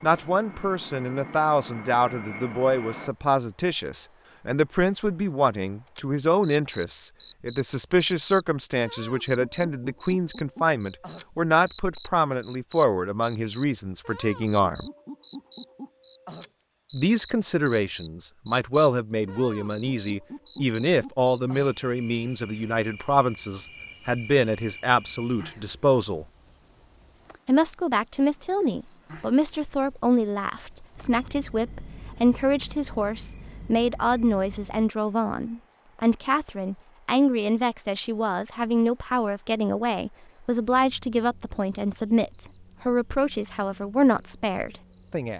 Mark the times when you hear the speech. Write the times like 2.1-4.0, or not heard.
0.0-14.8, 16.9-26.2, 27.4-45.3.